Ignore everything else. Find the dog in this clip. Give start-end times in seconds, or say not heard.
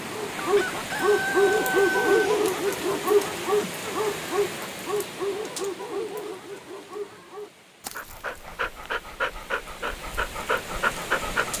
0.1-11.5.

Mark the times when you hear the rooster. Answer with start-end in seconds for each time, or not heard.
0.3-2.1.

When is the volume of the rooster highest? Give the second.
2 s.